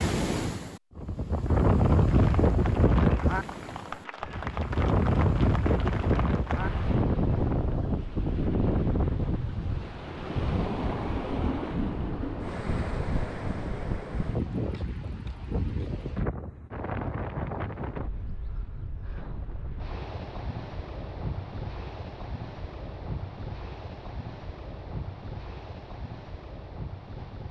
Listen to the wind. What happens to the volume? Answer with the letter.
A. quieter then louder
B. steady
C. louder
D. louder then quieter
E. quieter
E.